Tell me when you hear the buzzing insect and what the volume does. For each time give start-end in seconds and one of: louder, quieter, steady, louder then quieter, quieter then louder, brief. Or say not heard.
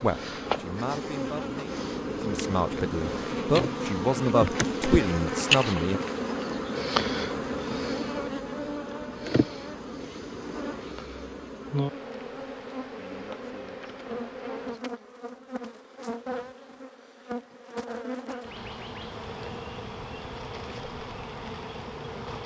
0.0-22.4 quieter.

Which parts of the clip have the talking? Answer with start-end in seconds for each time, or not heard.
0.0-6.0.